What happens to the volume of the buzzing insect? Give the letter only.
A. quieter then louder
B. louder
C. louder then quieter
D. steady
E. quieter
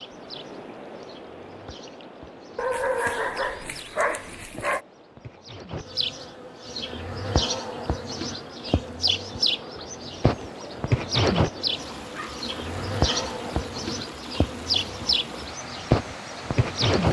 B.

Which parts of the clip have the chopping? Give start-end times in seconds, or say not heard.
not heard.